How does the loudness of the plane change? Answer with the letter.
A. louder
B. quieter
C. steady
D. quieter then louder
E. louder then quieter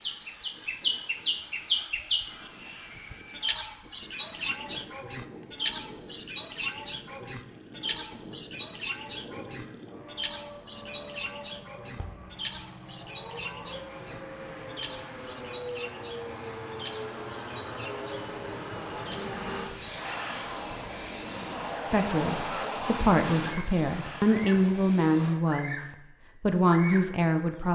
A.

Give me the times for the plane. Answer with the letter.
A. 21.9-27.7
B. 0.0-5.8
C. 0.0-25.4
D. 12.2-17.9
C.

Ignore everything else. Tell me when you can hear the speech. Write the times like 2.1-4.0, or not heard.
21.9-27.7.